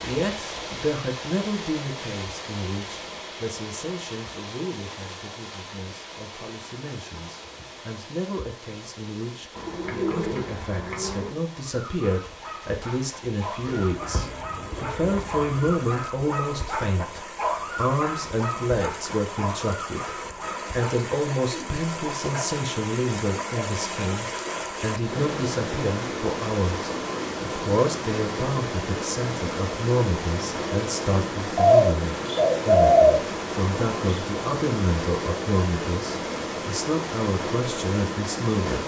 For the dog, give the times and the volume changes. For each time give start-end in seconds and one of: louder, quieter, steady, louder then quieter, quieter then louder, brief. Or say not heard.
11.7-22.6 louder then quieter.